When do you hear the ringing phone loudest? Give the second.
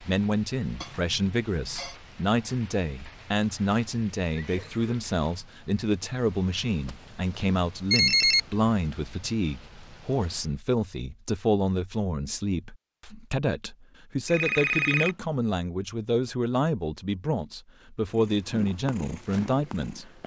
8 s.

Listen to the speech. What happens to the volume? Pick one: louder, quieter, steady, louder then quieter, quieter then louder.
steady.